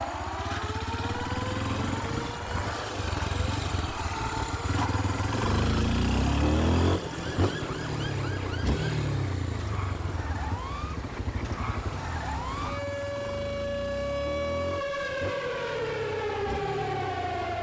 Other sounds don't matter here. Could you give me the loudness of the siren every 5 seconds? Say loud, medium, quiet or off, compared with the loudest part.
medium, medium, loud, loud.